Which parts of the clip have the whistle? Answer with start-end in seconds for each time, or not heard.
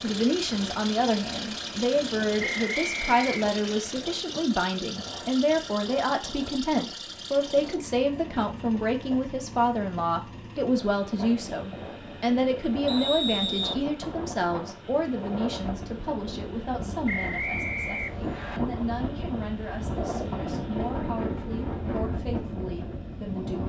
2.4-3.5, 12.8-13.8, 17.1-18.6.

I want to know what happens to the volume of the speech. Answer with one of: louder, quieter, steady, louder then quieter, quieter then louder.
quieter.